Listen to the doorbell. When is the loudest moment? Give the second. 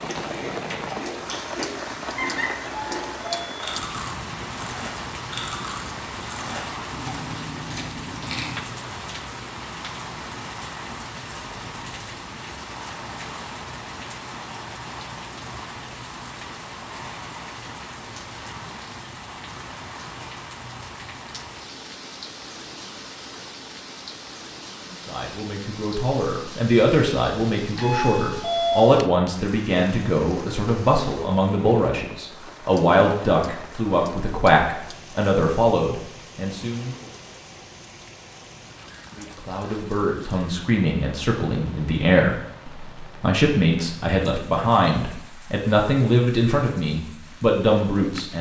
29 s.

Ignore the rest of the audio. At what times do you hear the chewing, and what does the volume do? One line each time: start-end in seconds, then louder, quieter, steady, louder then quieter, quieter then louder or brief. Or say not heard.
0.0-8.6 steady.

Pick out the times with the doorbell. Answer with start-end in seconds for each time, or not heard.
2.1-3.6, 27.6-29.0.